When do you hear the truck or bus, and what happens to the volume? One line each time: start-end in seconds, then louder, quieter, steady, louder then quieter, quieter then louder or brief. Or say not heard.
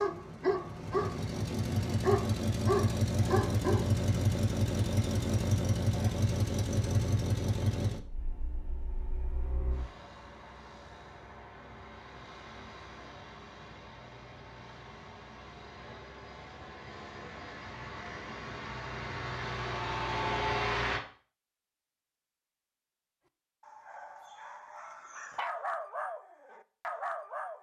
0.0-21.0 quieter then louder.